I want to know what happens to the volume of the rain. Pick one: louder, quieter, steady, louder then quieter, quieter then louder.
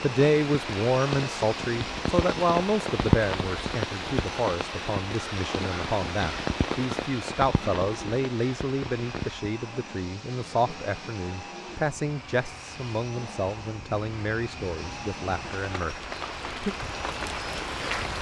quieter then louder.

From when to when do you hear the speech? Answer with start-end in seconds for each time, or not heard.
0.0-16.8.